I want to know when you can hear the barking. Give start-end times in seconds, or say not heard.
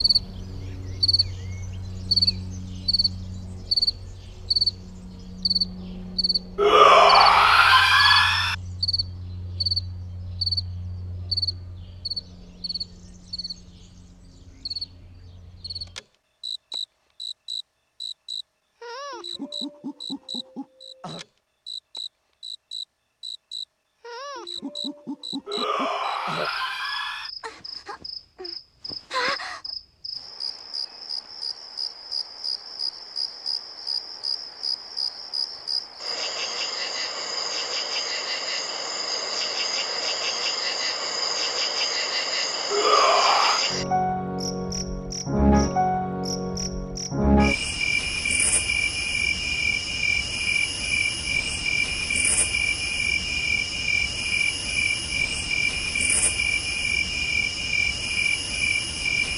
not heard.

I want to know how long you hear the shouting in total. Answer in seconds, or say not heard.
5 s.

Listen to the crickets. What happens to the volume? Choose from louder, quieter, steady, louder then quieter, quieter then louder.
quieter then louder.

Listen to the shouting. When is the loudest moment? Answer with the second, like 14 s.
7 s.